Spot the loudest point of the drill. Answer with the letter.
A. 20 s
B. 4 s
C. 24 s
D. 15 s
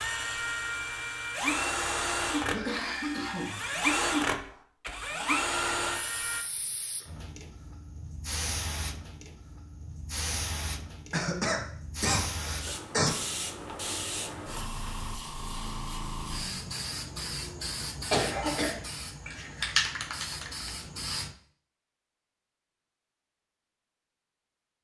B.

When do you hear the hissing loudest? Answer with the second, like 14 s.
20 s.